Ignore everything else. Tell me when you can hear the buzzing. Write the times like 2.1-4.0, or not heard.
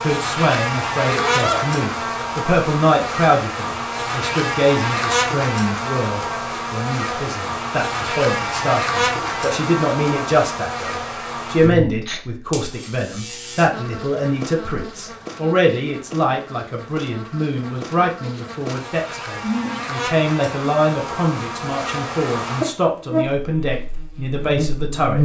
0.0-25.1.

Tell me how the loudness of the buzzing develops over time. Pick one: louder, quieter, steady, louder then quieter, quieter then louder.
quieter then louder.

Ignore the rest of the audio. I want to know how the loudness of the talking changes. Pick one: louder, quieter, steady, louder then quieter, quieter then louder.
steady.